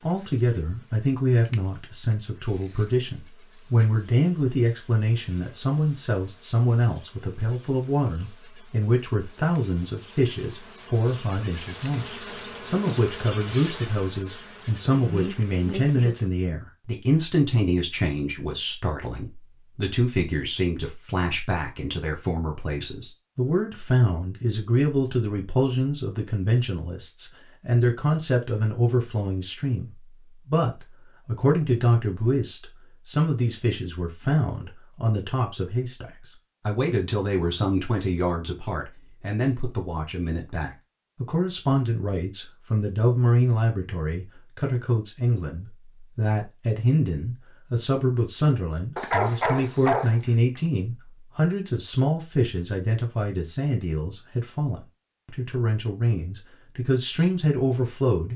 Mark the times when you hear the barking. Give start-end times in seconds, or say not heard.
49.0-50.6.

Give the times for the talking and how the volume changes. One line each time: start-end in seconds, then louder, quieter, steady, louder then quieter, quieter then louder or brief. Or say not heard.
0.0-58.3 steady.